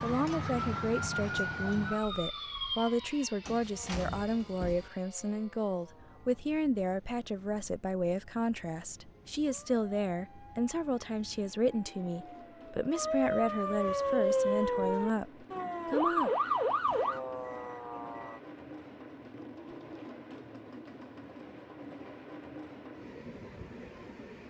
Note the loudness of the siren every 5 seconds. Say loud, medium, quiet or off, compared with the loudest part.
medium, quiet, loud, loud, off.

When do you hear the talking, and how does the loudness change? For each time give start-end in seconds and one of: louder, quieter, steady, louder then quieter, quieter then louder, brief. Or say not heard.
0.0-16.3 steady.